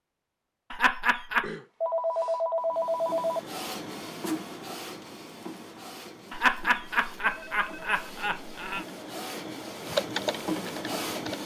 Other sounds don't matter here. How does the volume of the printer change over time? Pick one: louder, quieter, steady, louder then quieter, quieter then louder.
quieter then louder.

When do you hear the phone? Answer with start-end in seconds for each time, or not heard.
1.4-3.4, 7.3-8.0.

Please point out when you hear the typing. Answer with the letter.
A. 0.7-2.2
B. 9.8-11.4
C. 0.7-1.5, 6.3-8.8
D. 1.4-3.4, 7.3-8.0
B.